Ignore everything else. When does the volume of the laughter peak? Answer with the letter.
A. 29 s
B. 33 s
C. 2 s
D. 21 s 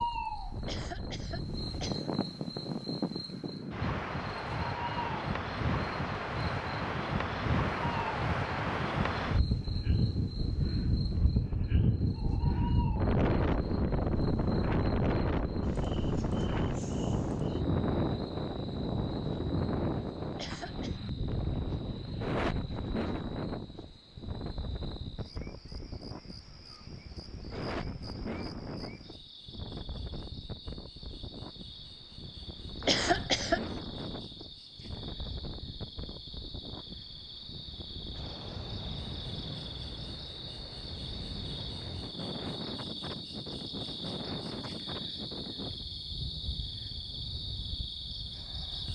B.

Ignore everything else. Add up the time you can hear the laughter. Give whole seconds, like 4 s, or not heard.
3 s.